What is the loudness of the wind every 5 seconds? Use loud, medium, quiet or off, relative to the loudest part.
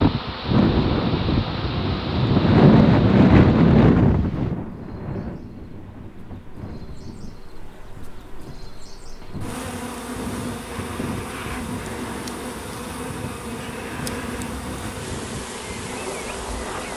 loud, quiet, quiet, quiet.